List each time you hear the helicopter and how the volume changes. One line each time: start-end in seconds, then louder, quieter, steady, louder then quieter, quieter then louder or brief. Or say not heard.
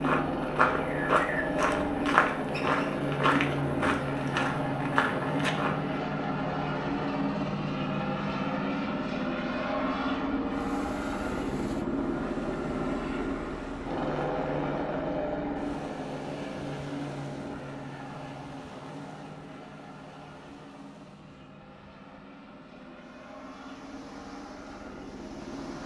0.0-25.8 quieter.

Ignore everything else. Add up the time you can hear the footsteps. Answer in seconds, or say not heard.
6 s.